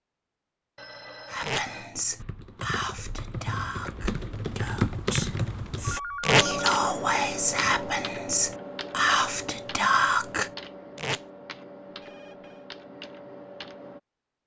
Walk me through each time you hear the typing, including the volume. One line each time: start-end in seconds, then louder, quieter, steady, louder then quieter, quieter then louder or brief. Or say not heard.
2.1-14.0 louder then quieter.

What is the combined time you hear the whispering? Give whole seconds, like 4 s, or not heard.
9 s.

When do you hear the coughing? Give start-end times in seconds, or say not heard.
not heard.